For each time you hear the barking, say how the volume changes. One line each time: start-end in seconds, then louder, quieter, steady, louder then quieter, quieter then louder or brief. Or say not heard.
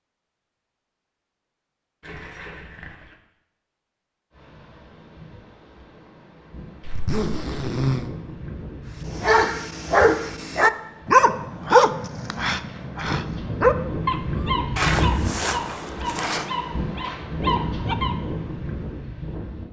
9.2-18.2 quieter.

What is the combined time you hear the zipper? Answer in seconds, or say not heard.
4 s.